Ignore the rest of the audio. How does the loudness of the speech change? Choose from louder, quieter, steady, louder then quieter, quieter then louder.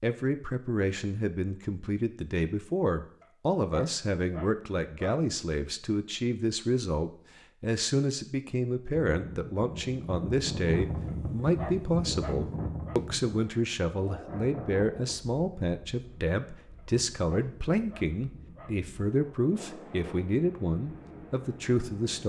steady.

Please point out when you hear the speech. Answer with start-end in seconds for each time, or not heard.
0.0-22.2.